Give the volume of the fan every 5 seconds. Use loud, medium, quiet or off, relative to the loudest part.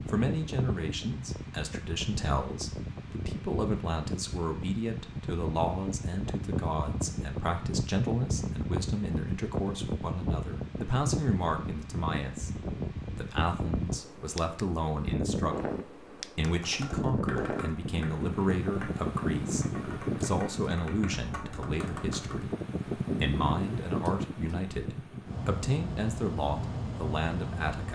medium, loud, loud, loud, loud, loud.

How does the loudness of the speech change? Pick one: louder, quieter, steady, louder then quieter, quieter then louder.
steady.